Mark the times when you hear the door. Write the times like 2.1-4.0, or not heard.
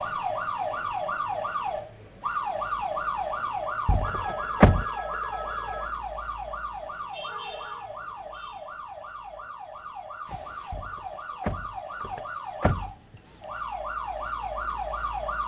3.9-4.8, 10.7-12.9.